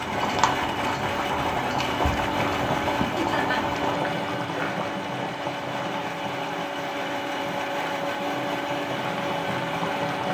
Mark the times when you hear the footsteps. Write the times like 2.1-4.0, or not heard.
not heard.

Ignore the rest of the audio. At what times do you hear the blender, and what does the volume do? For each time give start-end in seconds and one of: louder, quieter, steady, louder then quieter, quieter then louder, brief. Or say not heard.
0.0-10.2 steady.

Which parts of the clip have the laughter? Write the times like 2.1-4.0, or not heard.
3.1-3.6.